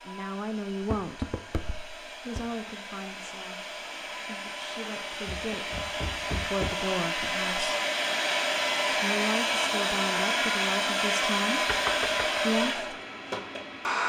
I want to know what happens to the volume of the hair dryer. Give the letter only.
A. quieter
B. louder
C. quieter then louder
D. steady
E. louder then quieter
B.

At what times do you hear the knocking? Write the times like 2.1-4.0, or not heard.
0.8-2.5, 5.2-6.8, 11.7-12.4.